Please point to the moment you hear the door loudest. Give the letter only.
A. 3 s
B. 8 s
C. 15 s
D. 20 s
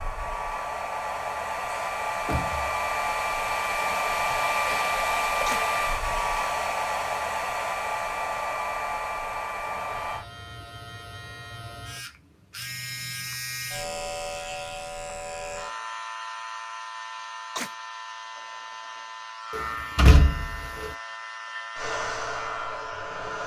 D.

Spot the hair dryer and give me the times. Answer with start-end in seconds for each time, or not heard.
0.0-10.2, 21.8-23.4.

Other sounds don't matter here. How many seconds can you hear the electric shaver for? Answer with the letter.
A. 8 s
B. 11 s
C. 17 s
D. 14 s
D.